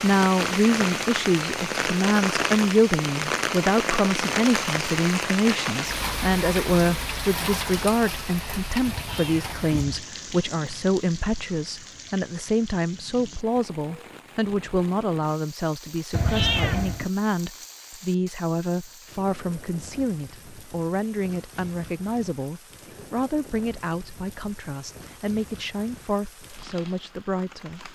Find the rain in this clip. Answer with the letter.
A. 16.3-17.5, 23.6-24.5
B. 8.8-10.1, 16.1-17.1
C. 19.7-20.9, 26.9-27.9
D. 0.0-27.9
D.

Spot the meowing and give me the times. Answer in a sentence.
You can hear the meowing from 8.8 to 10.1 s and from 16.1 to 17.1 s.